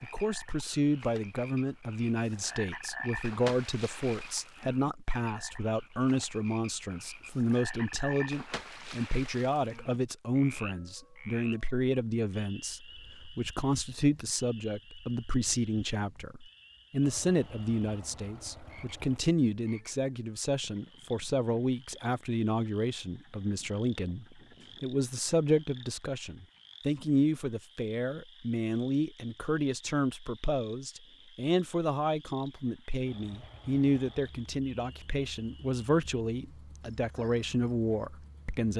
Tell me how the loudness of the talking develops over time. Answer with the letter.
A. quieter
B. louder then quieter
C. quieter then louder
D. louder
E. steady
E.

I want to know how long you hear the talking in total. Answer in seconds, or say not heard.
39 s.